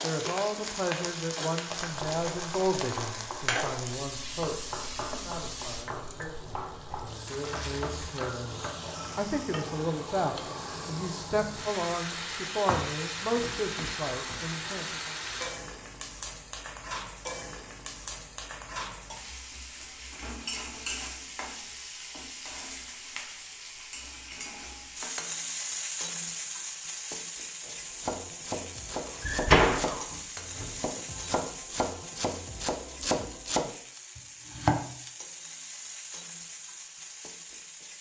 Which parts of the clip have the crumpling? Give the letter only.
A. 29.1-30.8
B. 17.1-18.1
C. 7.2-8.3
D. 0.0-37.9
C.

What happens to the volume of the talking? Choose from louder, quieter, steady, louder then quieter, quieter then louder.
quieter then louder.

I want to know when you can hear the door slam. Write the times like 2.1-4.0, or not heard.
29.1-30.8.